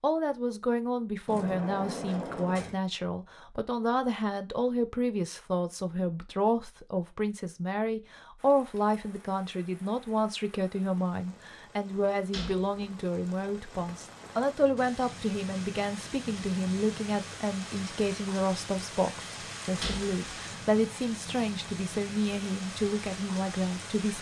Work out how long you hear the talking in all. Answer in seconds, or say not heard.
24 s.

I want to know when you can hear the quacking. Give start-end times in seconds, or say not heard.
not heard.